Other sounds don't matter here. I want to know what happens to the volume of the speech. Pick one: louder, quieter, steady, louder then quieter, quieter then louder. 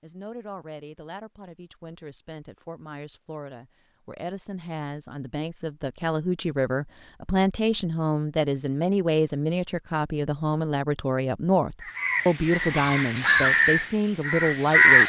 louder.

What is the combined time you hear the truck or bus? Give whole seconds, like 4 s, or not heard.
not heard.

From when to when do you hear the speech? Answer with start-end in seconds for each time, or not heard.
0.0-15.0.